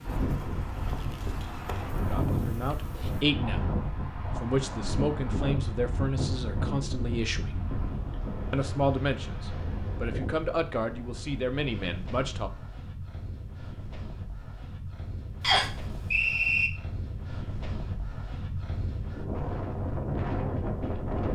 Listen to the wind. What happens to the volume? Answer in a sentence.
The volume of the wind goes down, then up.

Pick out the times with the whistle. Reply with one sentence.
The whistle can be heard from 15.4 to 16.7 s.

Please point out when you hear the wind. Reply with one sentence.
You can hear the wind from 0.0 to 21.2 s.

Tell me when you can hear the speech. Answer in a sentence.
You can hear the speech from 2.1 to 7.6 s and from 8.5 to 12.5 s.